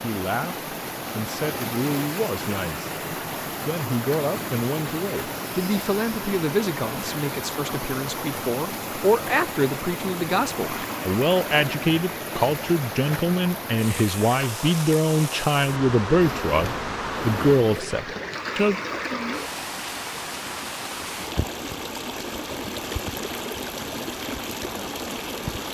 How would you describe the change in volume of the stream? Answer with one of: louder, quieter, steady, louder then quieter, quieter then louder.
steady.